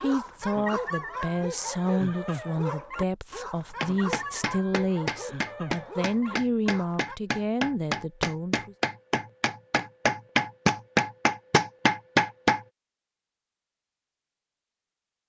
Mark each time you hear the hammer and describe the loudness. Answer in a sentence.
You can hear the hammer from 3.6 to 12.6 s, getting louder.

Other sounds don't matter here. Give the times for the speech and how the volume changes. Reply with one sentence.
You can hear the speech from 0.0 to 8.8 s, at a steady volume.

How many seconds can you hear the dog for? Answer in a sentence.
The dog can be heard for 7 seconds in total.